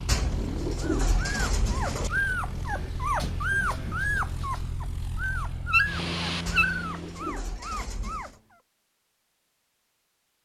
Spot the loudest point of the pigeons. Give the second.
1 s.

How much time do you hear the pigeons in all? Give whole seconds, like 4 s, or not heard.
4 s.